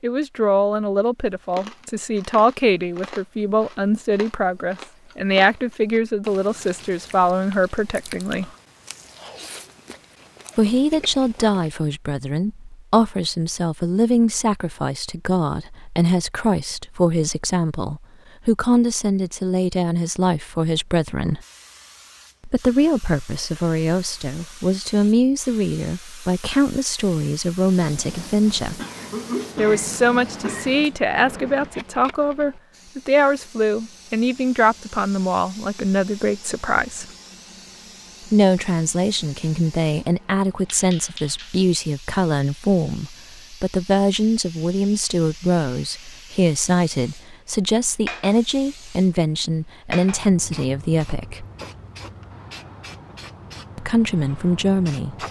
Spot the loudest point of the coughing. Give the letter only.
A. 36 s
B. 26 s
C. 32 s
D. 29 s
D.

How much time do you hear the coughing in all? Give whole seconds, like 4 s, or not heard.
2 s.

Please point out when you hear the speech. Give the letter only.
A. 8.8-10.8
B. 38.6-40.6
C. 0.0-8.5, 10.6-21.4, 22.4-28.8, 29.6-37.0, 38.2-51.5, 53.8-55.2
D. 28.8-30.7
C.